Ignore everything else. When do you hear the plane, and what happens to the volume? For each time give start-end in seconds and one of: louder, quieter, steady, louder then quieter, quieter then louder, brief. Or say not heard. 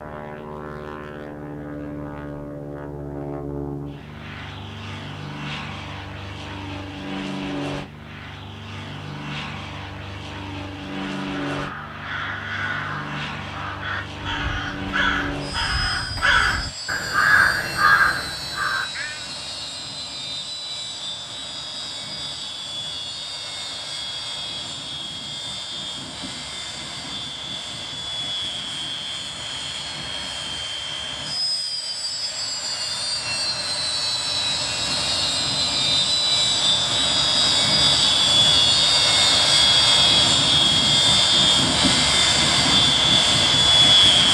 0.0-44.2 louder.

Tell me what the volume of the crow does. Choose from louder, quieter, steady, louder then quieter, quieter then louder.
louder.